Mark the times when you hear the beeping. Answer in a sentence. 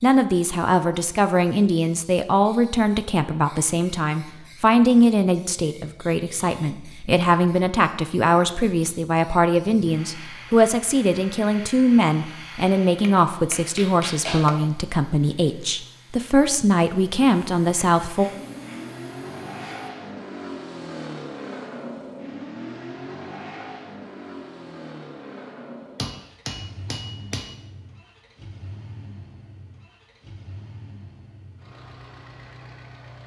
The beeping can't be heard in this clip.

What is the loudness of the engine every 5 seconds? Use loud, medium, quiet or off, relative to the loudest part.
off, off, off, loud, loud, medium, medium.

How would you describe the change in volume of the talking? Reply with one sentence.
The loudness of the talking stays about the same.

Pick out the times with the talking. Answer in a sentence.
The talking can be heard from 0.0 to 18.2 s.